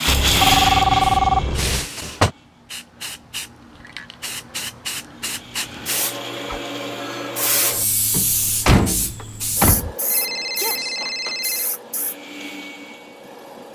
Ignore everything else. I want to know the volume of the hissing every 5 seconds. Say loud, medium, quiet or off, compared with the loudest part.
medium, loud, medium.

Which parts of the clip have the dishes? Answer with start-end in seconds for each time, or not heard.
not heard.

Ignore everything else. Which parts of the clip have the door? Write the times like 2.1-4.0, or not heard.
1.6-2.3, 8.1-9.9.